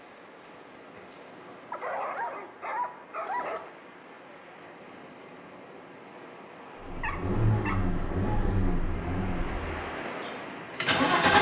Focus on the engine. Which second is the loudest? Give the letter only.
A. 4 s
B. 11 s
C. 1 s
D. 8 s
B.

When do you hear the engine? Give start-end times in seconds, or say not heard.
6.8-11.3.